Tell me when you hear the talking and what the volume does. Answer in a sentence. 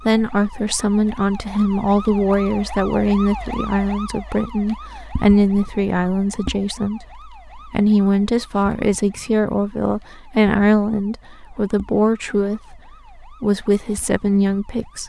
The talking can be heard from 0.1 to 15.0 s, at a steady volume.